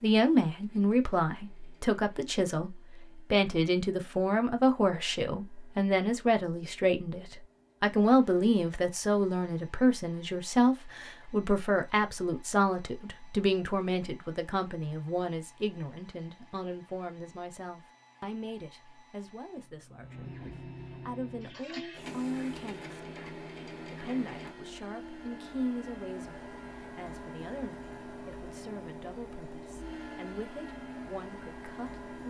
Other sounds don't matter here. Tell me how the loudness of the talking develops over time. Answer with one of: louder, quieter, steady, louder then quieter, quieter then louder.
quieter.